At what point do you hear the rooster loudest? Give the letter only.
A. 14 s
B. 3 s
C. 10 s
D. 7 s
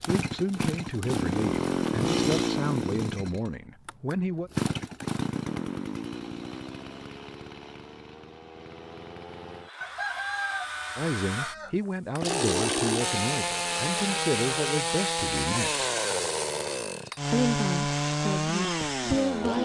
C.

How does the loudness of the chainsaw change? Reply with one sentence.
The loudness of the chainsaw goes down, then up.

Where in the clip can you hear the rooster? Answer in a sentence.
The rooster can be heard from 9.8 to 11.8 s.